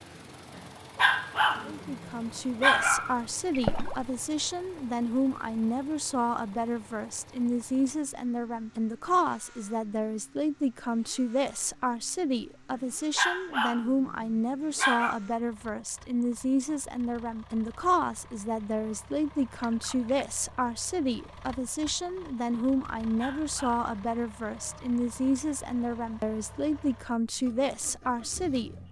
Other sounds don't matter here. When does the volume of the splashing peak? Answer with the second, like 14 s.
4 s.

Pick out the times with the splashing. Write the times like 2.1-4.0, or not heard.
3.5-4.1, 19.5-20.1.